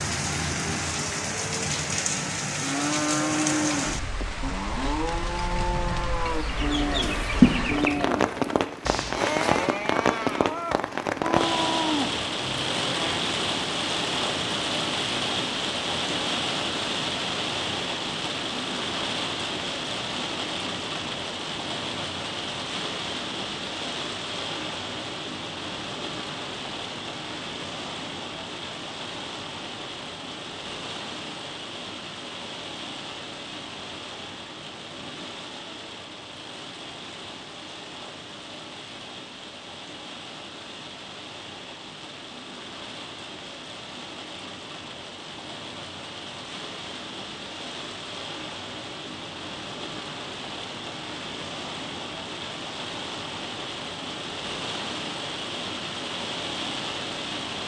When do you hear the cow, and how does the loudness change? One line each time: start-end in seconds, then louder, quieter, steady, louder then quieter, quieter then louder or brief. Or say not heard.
2.6-13.2 steady.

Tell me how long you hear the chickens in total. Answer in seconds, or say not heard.
2 s.